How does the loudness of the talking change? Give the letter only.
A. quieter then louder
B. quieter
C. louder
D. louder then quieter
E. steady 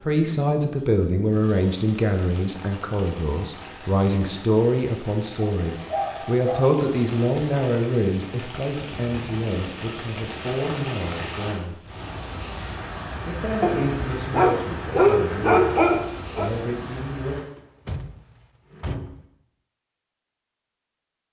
B.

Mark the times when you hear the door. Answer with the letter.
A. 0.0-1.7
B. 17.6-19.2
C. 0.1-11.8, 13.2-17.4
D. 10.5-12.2
B.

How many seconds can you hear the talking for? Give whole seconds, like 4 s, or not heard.
16 s.